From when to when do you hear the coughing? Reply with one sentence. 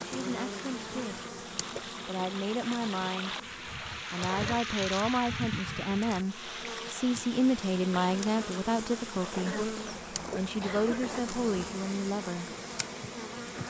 The coughing can be heard from 4.2 to 4.8 s and from 9.2 to 11.2 s.